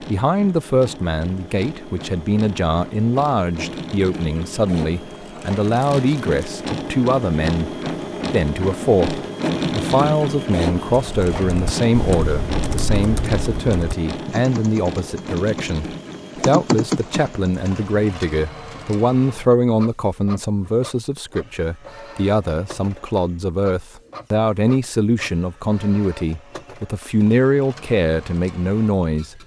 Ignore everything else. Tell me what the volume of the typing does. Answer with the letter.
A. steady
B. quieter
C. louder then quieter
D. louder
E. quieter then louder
E.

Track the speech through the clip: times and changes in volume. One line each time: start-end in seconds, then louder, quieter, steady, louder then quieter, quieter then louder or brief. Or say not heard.
0.0-29.4 steady.